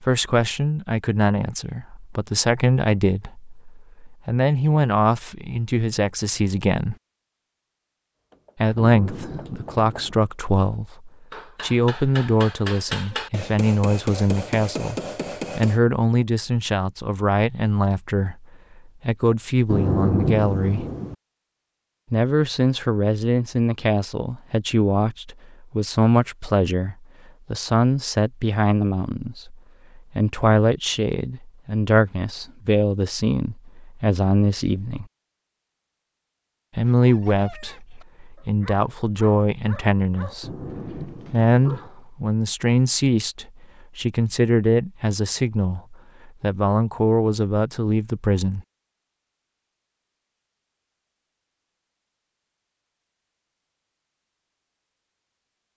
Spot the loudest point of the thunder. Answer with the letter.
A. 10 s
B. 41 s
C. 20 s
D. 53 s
C.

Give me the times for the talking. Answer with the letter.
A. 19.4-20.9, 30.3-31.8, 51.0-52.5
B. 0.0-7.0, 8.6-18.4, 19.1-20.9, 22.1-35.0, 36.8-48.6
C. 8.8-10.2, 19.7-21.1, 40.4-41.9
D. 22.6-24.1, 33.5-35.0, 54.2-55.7
B.